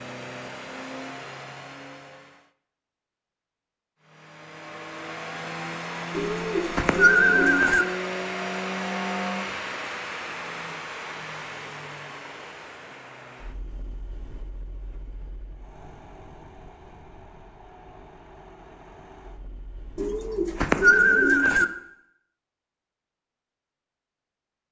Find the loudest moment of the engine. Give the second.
9 s.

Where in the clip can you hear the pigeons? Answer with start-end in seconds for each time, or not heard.
6.2-7.8, 19.9-21.6.